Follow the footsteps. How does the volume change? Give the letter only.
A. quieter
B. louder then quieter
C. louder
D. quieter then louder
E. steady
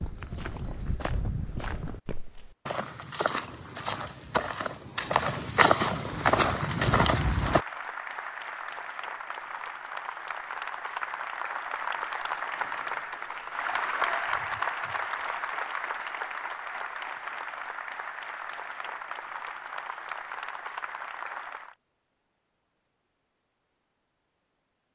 C.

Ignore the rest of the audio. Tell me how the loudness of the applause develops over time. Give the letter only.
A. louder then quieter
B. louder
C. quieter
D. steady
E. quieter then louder
A.